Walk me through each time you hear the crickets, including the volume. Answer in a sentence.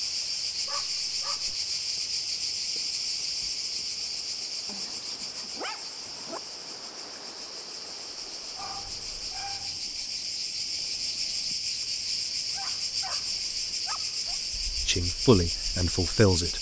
The crickets can be heard from 0.0 to 16.5 s, getting quieter then louder.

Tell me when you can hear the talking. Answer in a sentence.
You can hear the talking from 14.8 to 16.5 s.